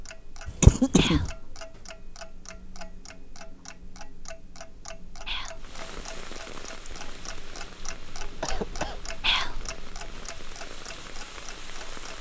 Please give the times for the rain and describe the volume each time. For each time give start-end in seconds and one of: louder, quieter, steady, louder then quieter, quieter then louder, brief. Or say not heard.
5.5-12.1 quieter then louder.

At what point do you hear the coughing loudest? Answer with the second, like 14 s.
1 s.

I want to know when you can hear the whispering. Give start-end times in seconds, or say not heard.
0.9-1.4, 5.2-5.7, 9.2-9.7.